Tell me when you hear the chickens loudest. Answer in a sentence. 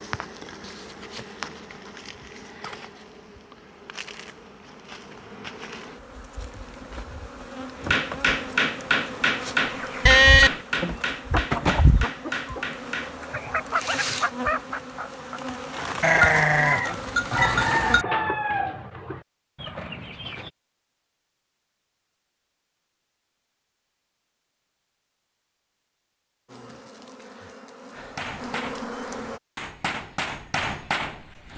The volume of the chickens peaks at 18 seconds.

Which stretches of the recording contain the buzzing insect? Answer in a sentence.
You can hear the buzzing insect from 0.0 to 18.0 s and from 26.4 to 29.4 s.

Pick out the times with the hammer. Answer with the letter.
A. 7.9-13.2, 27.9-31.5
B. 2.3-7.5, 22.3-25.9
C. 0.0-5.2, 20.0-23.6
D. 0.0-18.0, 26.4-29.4
A.